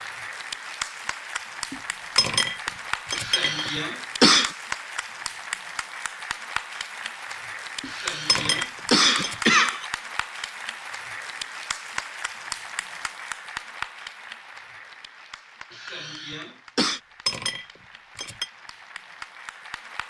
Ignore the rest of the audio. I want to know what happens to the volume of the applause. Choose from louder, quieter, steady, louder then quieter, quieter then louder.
quieter.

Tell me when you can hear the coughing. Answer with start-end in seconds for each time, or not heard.
3.1-4.5, 7.8-9.8, 15.7-17.0.